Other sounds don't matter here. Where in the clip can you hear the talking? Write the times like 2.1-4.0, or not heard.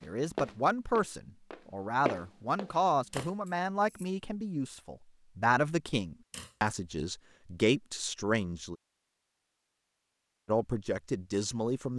0.0-8.8, 10.4-11.9.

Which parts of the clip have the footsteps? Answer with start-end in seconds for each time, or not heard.
0.0-3.3.